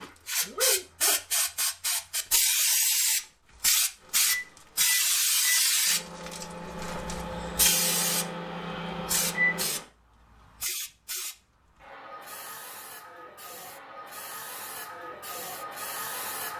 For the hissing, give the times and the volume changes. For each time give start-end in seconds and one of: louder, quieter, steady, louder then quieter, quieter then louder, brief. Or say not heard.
0.0-16.5 quieter.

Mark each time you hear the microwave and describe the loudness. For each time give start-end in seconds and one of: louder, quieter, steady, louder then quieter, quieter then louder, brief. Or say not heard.
4.0-9.8 steady.